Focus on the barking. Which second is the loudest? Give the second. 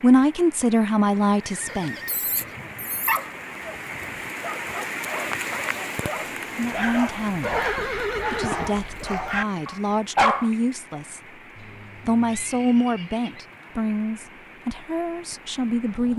10 s.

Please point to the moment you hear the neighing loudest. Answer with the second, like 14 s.
8 s.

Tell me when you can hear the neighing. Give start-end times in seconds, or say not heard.
1.4-3.2, 7.4-8.8, 11.6-13.4.